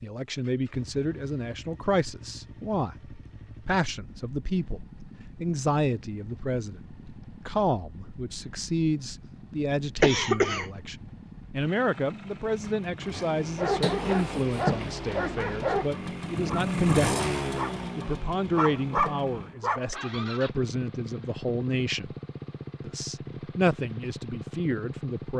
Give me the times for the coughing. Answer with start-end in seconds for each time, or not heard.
10.0-10.7, 13.8-14.9.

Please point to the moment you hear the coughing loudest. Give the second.
10 s.